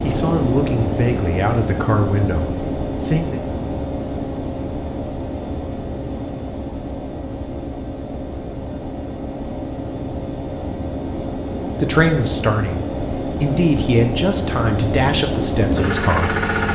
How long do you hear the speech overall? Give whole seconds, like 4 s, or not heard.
8 s.